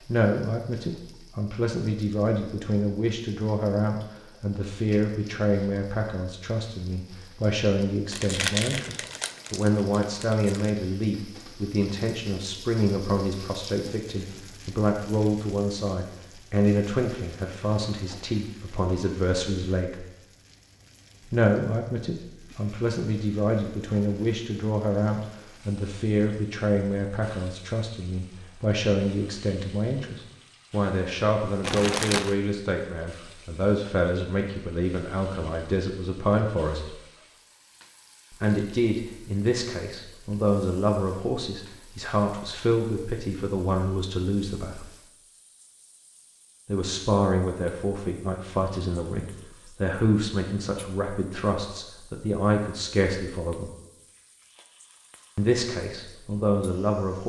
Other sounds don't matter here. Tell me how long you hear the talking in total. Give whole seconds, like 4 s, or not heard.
51 s.